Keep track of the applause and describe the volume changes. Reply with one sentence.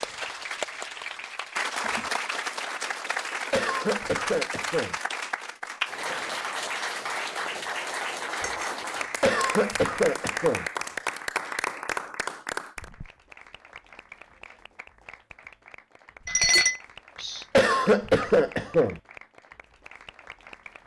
The volume of the applause goes down.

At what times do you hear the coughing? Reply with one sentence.
The coughing can be heard from 3.5 to 5.0 s, from 9.2 to 10.7 s and from 17.6 to 19.0 s.